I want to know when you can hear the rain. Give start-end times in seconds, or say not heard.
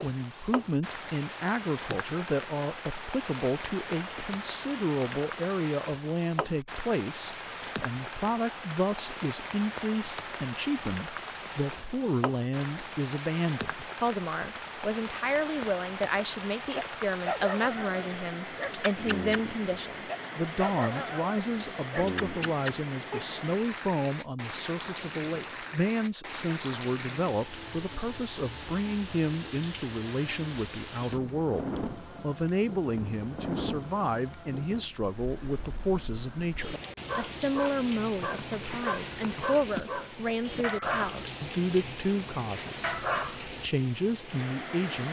0.0-45.0.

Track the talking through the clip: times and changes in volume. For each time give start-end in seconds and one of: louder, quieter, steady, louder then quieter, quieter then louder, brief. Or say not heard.
0.0-45.0 steady.